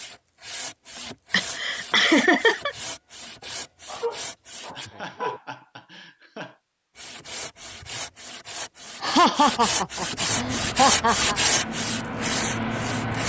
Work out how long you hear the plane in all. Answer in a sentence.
The plane can be heard for 3 seconds in total.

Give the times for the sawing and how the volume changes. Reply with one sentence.
You can hear the sawing from 0.0 to 4.9 s, at a steady volume; and from 7.0 to 13.2 s, getting louder then quieter.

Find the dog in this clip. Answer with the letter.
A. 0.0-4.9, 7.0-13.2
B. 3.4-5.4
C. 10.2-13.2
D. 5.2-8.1
B.